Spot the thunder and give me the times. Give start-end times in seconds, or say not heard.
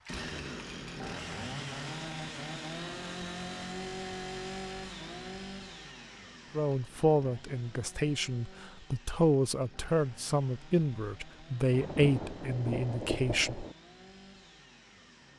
11.7-13.8.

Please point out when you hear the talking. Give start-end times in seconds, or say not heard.
6.5-13.7.